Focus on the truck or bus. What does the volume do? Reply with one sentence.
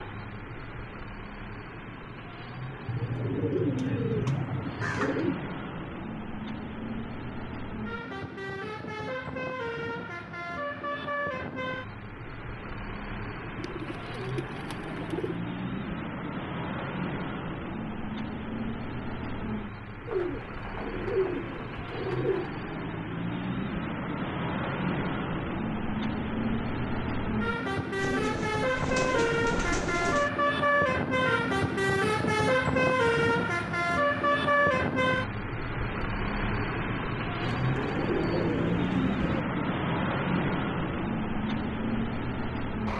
The loudness of the truck or bus goes up.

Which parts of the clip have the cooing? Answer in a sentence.
The cooing can be heard from 2.9 to 5.3 s, from 13.6 to 15.4 s, from 20.1 to 22.5 s, from 27.9 to 30.3 s and from 37.4 to 39.5 s.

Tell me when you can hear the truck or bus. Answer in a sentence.
You can hear the truck or bus from 0.0 to 42.9 s.